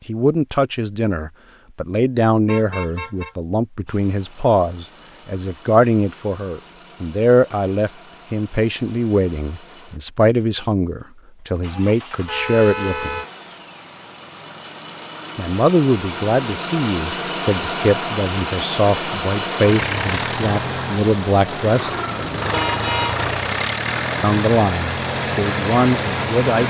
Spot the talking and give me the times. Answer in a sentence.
The talking can be heard from 0.1 to 13.2 s, from 15.3 to 21.9 s and from 24.2 to 26.6 s.